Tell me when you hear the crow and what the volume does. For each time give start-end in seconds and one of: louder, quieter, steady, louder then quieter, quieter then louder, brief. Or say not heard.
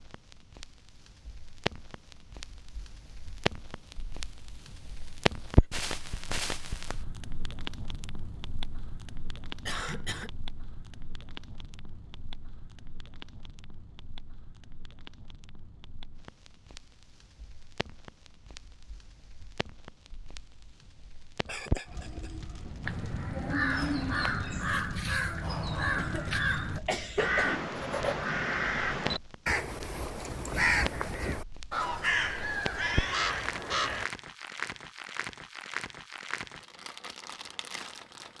22.8-34.0 steady.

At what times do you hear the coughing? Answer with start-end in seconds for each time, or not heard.
9.7-10.3, 21.4-22.3, 25.9-27.6.